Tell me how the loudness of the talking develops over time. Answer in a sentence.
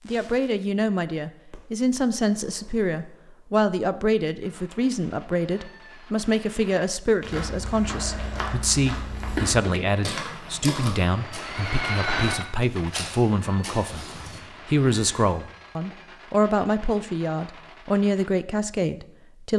The loudness of the talking stays about the same.